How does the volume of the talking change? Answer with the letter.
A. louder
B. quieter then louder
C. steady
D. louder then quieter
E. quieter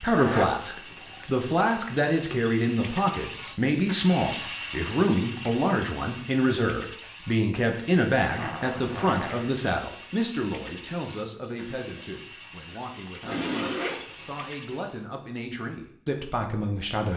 E.